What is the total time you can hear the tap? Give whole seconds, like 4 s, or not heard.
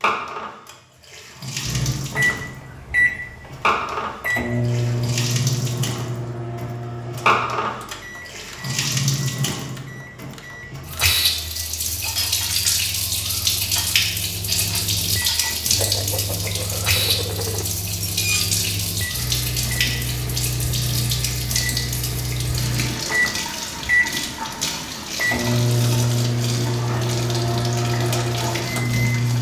29 s.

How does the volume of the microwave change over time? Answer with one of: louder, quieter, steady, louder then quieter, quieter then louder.
quieter then louder.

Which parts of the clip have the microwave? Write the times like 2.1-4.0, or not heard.
1.6-29.3.